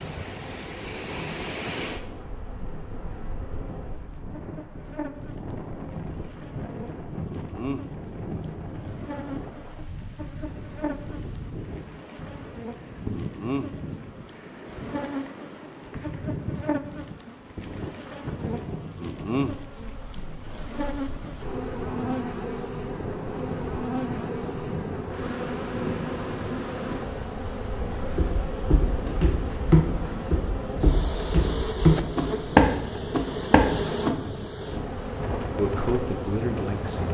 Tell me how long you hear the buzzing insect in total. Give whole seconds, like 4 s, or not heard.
37 s.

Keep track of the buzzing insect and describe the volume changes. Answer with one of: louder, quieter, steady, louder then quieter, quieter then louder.
louder.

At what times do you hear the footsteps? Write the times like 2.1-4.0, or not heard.
27.8-34.1.